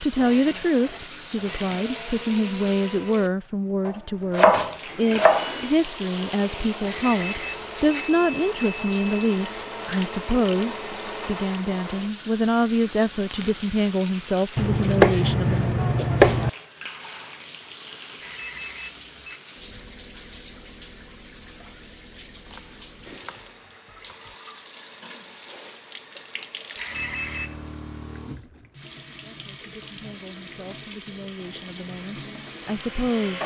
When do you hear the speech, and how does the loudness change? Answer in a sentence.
You can hear the speech from 0.0 to 15.8 s, at a steady volume; and from 29.1 to 33.4 s, getting louder.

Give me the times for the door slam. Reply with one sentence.
The door slam can't be heard in this clip.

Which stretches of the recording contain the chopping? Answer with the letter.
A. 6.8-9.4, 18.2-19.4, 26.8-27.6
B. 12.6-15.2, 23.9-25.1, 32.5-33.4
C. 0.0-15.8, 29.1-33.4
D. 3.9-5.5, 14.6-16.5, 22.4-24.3
D.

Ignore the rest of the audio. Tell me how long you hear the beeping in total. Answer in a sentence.
You can hear the beeping for 5 seconds altogether.